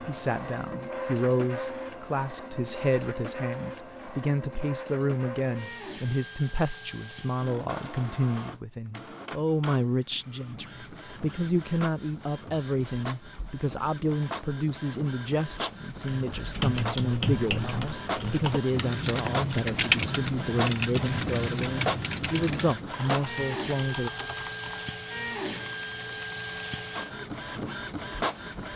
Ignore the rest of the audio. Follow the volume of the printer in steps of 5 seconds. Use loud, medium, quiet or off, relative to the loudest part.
loud, medium, medium, loud, loud, loud.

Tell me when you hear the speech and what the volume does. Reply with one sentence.
The speech can be heard from 0.0 to 24.1 s, at a steady volume.